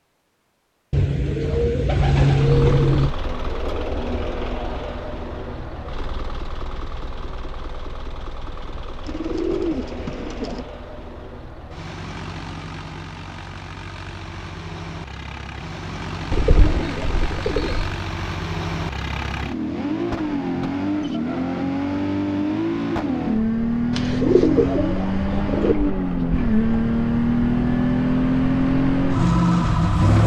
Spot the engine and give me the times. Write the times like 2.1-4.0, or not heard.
2.3-30.2.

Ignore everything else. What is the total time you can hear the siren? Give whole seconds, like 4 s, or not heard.
not heard.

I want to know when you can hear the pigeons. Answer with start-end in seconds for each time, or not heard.
0.9-3.1, 9.1-10.7, 16.3-17.9, 23.9-25.8.